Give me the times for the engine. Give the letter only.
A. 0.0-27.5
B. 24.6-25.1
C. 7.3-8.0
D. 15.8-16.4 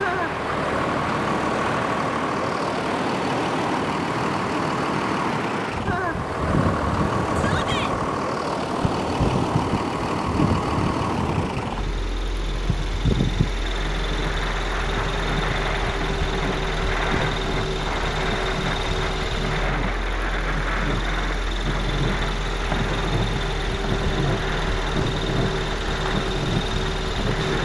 A.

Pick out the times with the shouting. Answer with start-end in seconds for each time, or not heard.
7.3-8.0.